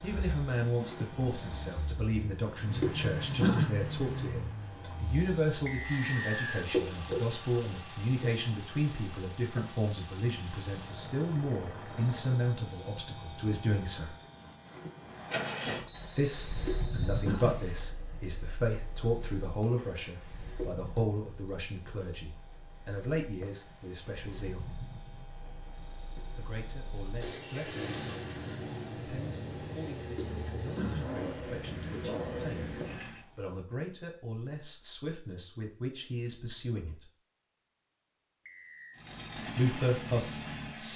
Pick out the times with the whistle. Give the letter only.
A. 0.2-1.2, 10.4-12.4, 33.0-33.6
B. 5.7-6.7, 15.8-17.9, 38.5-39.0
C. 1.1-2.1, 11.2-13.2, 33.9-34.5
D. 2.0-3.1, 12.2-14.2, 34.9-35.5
B.